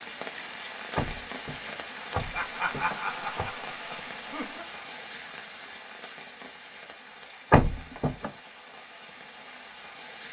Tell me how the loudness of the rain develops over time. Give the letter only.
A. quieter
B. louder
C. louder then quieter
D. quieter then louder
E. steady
A.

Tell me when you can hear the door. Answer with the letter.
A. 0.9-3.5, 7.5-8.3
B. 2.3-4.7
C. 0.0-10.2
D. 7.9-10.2
A.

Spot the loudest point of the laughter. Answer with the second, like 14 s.
3 s.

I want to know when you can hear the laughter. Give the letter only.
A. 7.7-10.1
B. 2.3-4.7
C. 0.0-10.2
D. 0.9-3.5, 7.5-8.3
B.